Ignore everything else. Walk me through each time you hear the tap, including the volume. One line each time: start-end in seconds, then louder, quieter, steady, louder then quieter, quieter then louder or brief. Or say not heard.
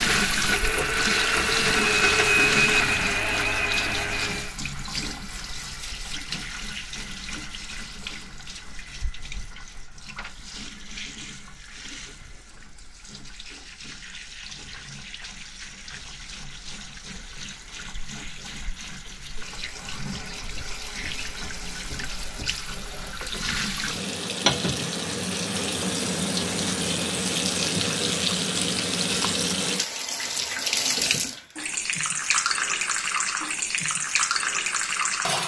0.0-35.4 quieter then louder.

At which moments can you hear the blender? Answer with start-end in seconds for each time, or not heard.
0.0-4.5.